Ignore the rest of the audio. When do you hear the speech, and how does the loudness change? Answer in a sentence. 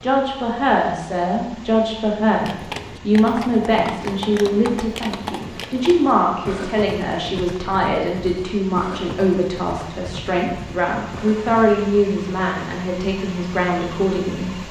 The speech can be heard from 0.0 to 14.6 s, at a steady volume.